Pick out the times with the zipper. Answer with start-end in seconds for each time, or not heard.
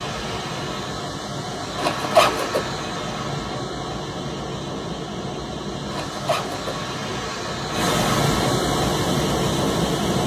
1.8-2.7, 5.9-6.8.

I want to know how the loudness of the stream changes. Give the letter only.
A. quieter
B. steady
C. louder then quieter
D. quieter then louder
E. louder
E.